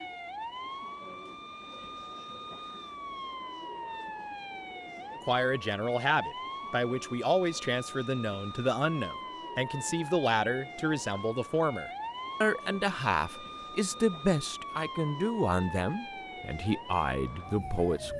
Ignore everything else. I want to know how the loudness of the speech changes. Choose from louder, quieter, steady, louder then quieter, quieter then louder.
steady.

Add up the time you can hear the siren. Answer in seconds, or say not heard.
18 s.